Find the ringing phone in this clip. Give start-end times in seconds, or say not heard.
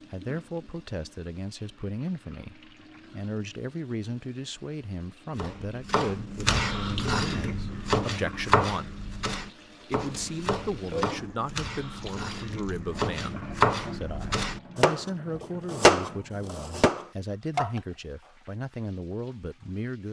not heard.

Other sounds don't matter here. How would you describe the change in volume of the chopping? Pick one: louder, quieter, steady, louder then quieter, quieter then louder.
quieter then louder.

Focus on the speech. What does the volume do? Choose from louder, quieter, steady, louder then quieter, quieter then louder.
steady.